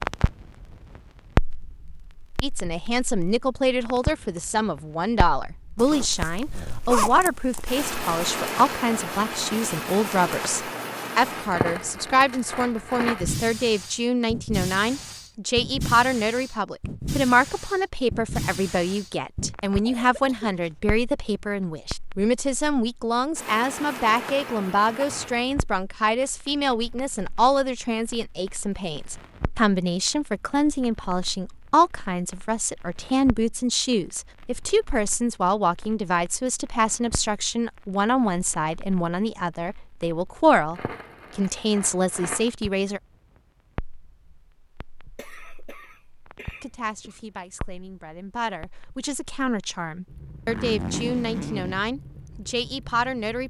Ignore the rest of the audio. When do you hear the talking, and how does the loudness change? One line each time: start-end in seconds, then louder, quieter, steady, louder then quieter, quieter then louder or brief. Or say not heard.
2.4-43.0 steady
46.6-53.4 louder.